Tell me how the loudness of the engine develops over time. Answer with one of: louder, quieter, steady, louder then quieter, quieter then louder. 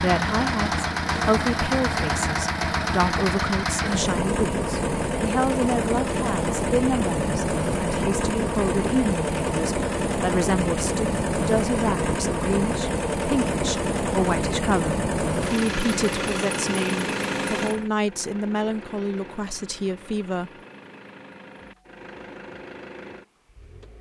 quieter.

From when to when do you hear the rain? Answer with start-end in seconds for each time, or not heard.
not heard.